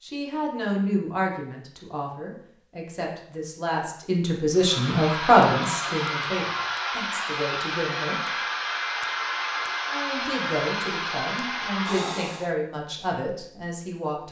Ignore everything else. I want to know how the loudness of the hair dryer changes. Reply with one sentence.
The volume of the hair dryer stays about the same.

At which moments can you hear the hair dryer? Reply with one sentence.
The hair dryer can be heard from 4.5 to 12.6 s.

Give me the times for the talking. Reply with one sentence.
The talking can be heard from 0.0 to 8.2 s and from 9.8 to 14.2 s.